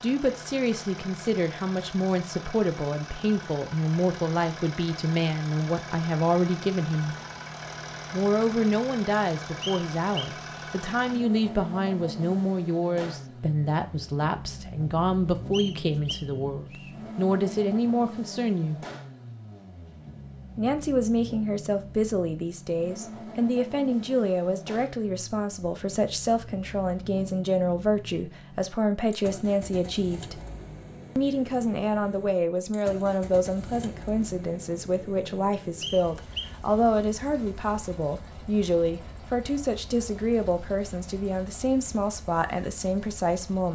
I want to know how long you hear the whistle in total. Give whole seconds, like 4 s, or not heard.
3 s.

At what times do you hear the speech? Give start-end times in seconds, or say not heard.
0.0-7.2, 8.1-18.8, 20.6-30.4, 31.1-43.7.